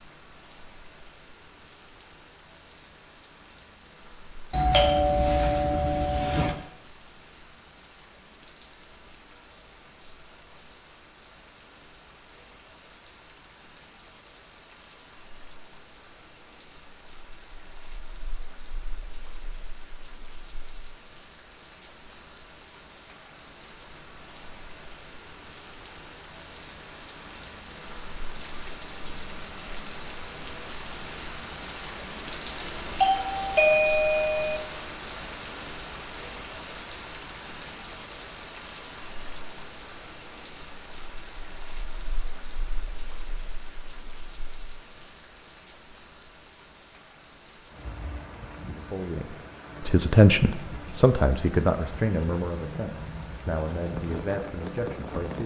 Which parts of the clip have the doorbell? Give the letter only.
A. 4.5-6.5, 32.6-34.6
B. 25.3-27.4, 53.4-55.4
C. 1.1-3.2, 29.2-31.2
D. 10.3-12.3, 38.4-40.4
A.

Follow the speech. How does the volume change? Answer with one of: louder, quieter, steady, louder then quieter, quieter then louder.
quieter.